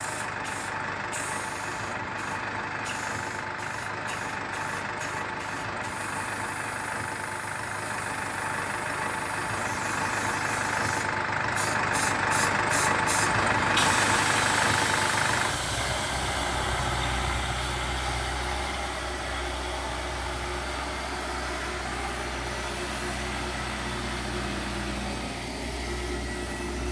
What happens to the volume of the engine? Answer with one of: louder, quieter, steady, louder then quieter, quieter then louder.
louder then quieter.